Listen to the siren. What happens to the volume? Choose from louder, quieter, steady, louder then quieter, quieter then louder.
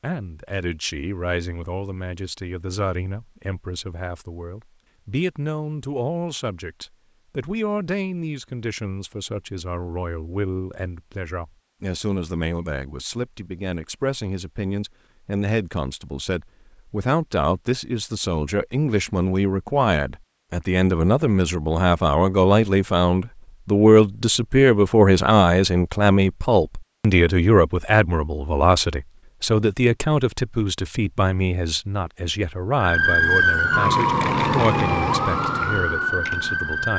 quieter.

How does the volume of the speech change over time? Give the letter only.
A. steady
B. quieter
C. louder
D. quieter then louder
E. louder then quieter
E.